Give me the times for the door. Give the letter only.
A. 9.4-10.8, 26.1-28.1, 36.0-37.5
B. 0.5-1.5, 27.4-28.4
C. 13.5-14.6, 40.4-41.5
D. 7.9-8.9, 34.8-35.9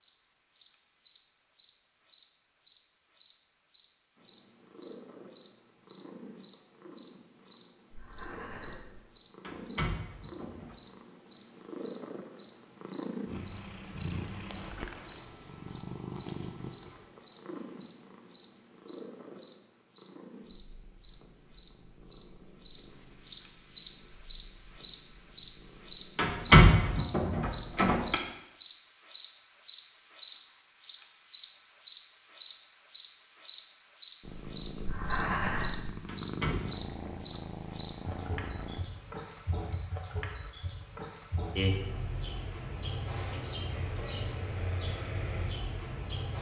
A.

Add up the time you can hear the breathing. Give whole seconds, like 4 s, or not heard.
2 s.